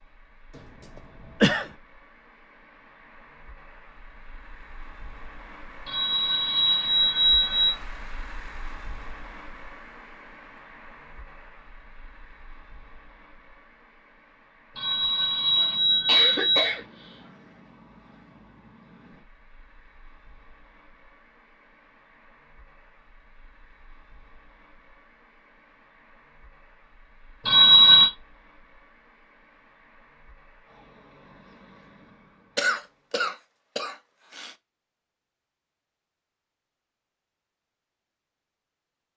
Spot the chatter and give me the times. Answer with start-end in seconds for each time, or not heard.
not heard.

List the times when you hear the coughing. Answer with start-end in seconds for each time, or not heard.
0.6-1.7, 15.6-17.1, 32.5-34.5.